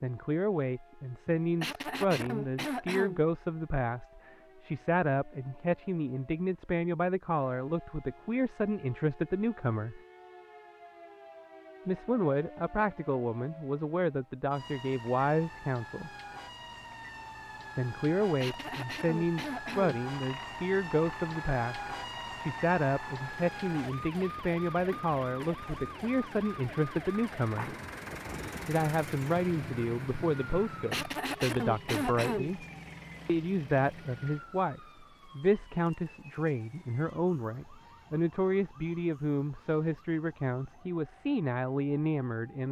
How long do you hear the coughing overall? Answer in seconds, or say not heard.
5 s.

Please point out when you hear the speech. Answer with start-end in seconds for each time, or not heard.
0.0-10.0, 11.8-16.1, 17.8-27.8, 28.6-32.6, 33.2-42.6.